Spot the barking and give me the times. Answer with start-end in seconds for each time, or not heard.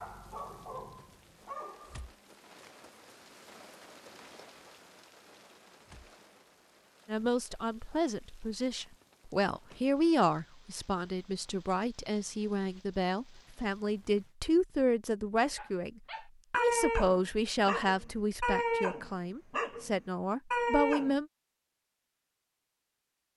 0.0-2.0, 15.6-21.1.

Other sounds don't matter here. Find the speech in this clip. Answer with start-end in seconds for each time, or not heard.
7.0-21.2.